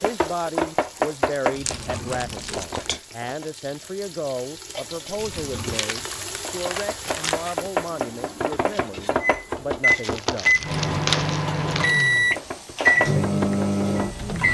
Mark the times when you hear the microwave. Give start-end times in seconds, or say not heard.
7.9-14.4.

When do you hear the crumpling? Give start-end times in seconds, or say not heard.
1.6-3.0, 5.7-7.7, 9.8-12.2.